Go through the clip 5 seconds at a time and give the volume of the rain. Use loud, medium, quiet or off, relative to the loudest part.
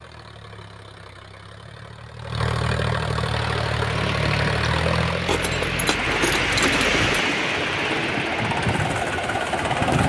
medium, loud.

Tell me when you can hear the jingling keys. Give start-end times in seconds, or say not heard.
5.2-7.0.